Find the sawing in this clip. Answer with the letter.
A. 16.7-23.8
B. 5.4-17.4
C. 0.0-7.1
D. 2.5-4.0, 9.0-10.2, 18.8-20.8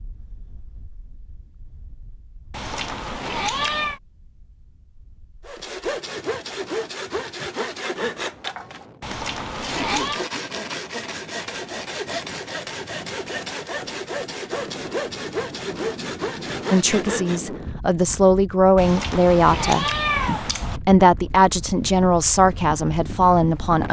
B.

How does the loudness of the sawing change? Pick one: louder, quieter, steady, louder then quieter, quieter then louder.
steady.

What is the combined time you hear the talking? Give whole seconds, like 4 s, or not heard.
7 s.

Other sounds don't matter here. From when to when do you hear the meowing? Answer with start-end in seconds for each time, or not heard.
2.5-4.0, 9.0-10.2, 18.8-20.8.